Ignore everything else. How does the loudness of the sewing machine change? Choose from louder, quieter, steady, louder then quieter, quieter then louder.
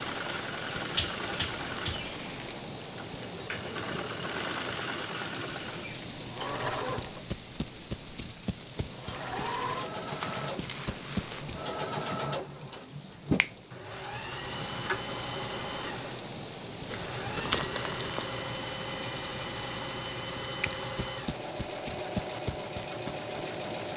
steady.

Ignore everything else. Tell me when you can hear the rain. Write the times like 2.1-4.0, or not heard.
0.0-23.9.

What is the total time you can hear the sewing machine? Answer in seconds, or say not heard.
24 s.